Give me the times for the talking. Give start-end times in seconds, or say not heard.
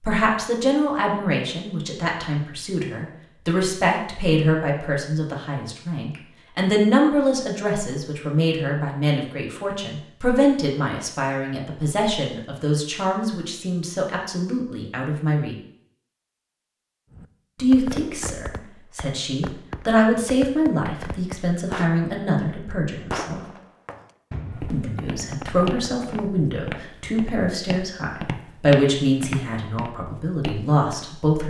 0.0-15.6, 17.6-23.4, 24.7-31.4.